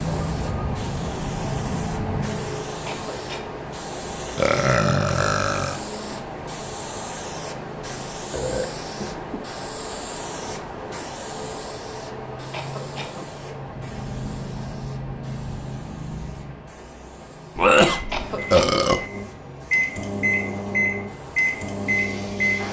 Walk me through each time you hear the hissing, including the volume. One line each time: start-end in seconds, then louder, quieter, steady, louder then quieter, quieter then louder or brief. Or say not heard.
0.0-22.6 quieter.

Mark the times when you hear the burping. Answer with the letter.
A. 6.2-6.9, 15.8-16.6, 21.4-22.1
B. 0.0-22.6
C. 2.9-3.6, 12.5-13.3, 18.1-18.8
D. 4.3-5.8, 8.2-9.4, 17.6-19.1
D.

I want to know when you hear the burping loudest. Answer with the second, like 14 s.
18 s.